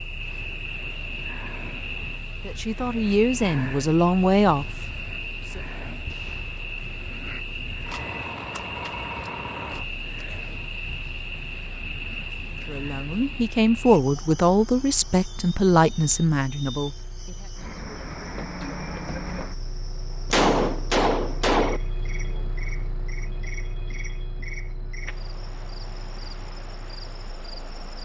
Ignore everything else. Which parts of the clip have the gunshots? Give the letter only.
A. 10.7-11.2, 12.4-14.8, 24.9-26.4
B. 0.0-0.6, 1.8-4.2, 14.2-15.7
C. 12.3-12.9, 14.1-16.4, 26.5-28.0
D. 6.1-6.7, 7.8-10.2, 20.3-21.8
D.